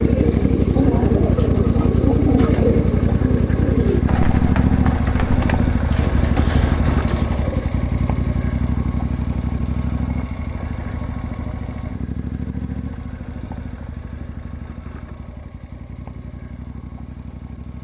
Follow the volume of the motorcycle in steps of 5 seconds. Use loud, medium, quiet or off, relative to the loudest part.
loud, loud, medium, quiet.